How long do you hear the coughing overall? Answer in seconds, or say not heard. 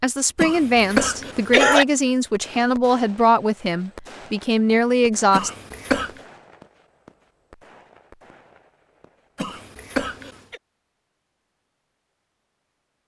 4 s.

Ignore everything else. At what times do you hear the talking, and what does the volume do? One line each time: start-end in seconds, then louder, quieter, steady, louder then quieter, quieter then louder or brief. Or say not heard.
0.0-5.5 steady.